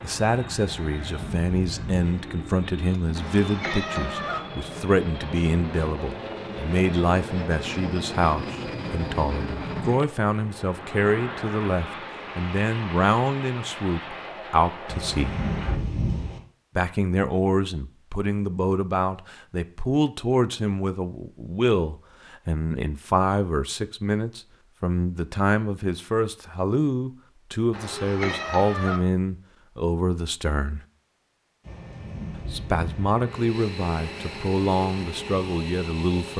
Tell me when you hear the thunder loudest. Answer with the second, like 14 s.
16 s.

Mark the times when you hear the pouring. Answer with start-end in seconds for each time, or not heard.
not heard.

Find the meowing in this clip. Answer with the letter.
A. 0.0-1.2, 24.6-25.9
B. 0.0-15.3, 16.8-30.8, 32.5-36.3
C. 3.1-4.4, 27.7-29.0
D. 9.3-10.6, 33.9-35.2
C.